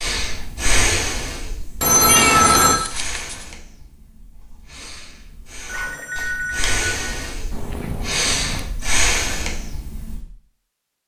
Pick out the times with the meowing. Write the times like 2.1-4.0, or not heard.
2.0-3.5, 7.5-8.8.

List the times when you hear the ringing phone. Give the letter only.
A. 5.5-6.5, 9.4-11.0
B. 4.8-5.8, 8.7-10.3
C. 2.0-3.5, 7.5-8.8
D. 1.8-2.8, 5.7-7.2
D.